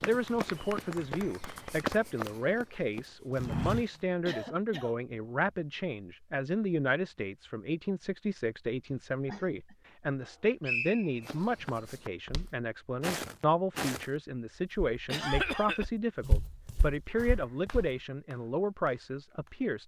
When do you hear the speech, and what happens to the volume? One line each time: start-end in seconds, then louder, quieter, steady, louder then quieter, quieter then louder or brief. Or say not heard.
0.0-19.8 steady.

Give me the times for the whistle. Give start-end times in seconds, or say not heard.
10.2-11.4.